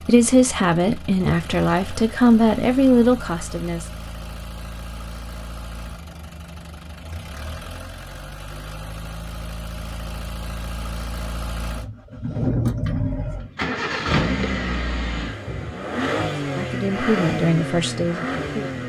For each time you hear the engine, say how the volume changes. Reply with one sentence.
You can hear the engine from 0.0 to 18.8 s, getting louder.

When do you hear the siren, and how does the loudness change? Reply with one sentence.
The siren can't be heard in this clip.